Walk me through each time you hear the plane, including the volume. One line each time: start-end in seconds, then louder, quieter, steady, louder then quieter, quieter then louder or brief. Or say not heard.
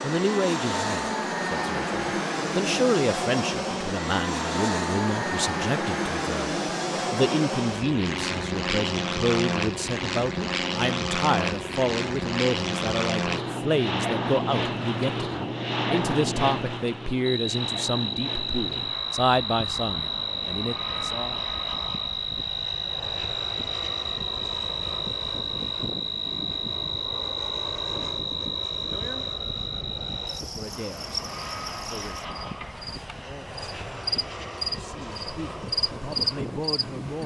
0.0-37.2 quieter.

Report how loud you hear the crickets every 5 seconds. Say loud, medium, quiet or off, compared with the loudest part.
off, off, off, loud, loud, loud, medium, loud.